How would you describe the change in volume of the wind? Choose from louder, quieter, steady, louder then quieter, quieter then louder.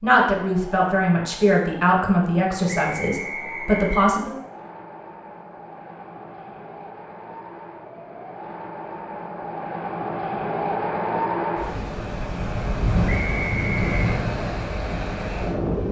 louder.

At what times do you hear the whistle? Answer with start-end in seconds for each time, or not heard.
2.7-4.1, 13.1-14.1.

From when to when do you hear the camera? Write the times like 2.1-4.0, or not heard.
not heard.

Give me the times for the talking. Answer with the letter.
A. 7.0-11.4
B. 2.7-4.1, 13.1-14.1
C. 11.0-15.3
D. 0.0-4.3
D.